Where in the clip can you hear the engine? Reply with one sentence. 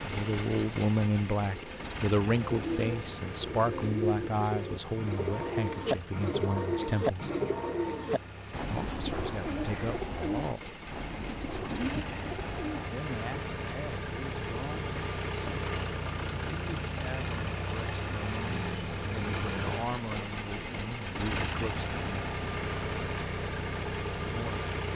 You can hear the engine from 0.0 to 24.9 s.